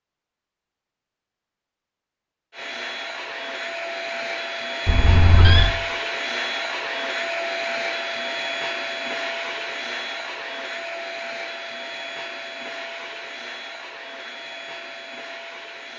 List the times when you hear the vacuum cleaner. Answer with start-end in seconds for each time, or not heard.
2.5-15.9.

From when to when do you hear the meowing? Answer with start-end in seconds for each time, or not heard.
4.8-5.8.